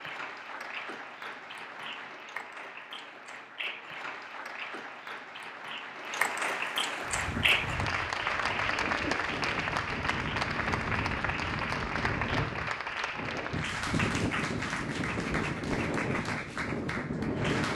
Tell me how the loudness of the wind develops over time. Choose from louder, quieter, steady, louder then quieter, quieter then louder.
louder.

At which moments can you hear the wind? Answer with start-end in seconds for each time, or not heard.
7.0-17.6.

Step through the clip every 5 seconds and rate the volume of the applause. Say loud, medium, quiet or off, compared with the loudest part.
medium, loud, loud, medium.